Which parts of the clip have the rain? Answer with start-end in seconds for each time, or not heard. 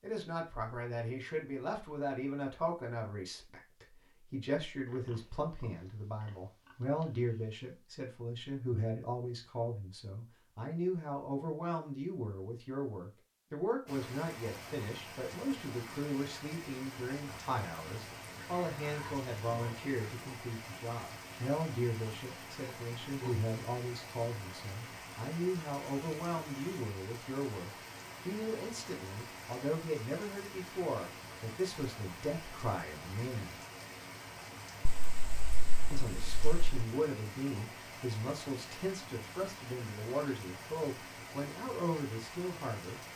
13.8-43.1.